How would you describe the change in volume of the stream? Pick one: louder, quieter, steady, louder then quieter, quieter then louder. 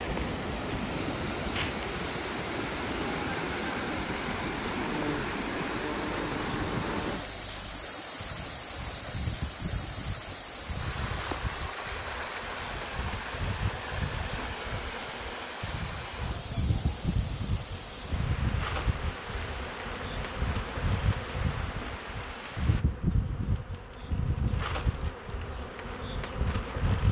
quieter.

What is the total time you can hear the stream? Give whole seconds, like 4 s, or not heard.
23 s.